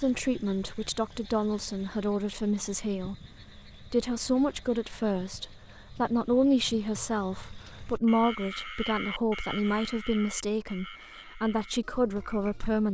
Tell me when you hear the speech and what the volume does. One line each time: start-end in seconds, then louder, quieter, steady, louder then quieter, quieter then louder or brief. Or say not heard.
0.0-12.8 steady.